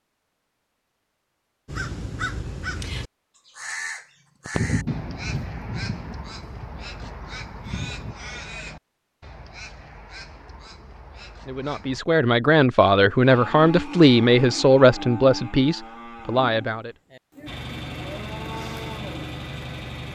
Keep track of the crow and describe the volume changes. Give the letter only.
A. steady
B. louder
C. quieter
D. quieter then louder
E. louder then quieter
C.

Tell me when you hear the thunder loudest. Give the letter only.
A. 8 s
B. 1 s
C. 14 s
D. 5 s
D.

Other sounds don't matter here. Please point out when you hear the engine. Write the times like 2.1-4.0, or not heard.
17.4-20.1.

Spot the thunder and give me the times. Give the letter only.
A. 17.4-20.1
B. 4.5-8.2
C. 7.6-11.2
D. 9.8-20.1
B.